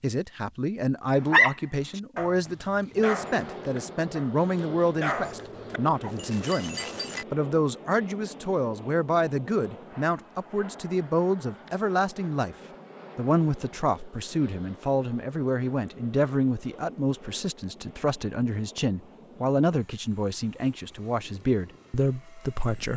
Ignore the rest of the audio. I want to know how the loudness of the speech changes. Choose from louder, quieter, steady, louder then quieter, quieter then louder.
steady.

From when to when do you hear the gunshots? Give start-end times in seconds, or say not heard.
not heard.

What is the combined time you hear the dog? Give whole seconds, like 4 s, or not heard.
6 s.